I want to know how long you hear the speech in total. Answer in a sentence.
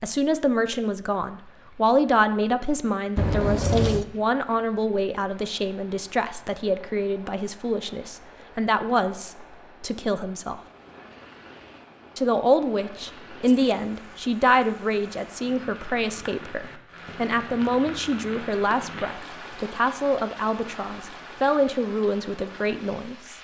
You can hear the speech for 22 seconds altogether.